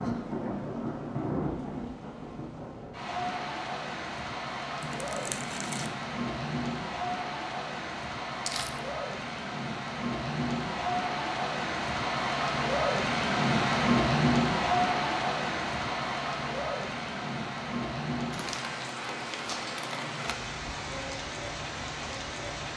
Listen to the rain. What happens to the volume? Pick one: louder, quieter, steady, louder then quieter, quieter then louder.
louder then quieter.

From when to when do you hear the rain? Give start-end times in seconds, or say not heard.
0.0-22.7.